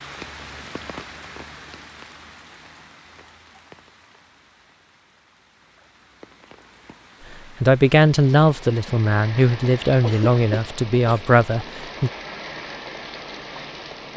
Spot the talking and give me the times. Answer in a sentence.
The talking can be heard from 7.6 to 12.1 s.